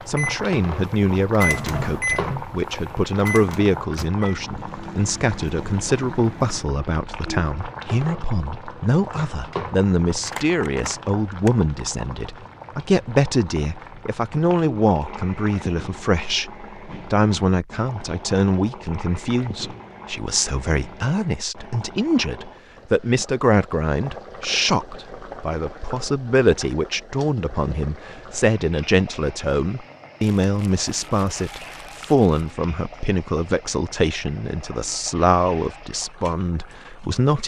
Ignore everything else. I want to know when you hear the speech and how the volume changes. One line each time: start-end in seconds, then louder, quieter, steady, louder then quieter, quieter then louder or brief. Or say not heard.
0.1-37.4 steady.